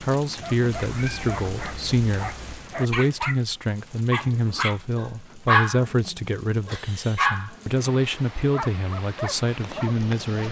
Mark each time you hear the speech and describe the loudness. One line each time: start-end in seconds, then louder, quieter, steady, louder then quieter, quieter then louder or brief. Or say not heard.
0.0-10.4 steady.